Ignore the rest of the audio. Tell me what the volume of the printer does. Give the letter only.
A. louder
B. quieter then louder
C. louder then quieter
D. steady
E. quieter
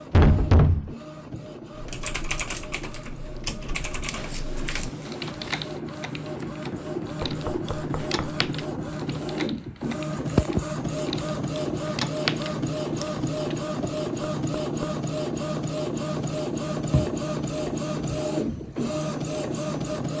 A.